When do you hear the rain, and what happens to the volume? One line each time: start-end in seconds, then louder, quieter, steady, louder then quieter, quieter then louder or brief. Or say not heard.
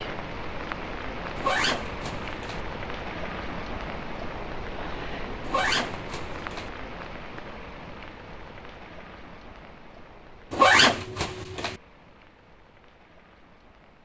0.0-14.0 quieter.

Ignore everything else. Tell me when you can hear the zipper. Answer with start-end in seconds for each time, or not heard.
1.4-2.6, 5.5-6.7, 10.5-11.8.